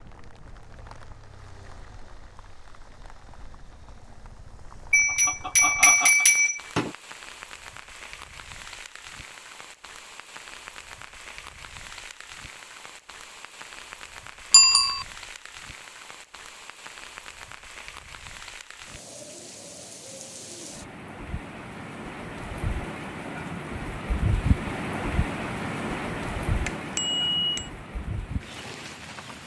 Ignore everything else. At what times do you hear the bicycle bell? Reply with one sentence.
The bicycle bell can be heard from 4.9 to 6.9 s, from 14.5 to 15.1 s and from 26.6 to 27.7 s.